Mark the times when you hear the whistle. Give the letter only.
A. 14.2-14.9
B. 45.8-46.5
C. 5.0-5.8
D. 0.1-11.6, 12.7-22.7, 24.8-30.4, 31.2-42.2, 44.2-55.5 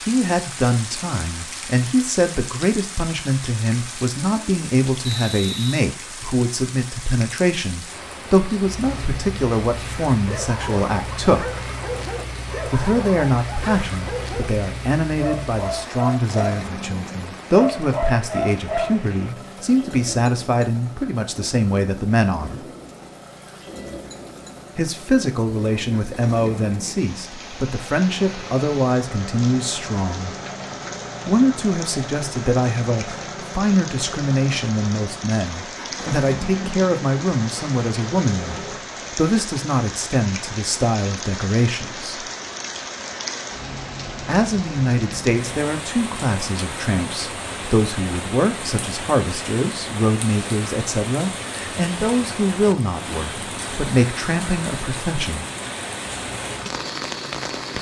C.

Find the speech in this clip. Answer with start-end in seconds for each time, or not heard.
0.1-11.6, 12.7-22.7, 24.8-30.4, 31.2-42.2, 44.2-55.5.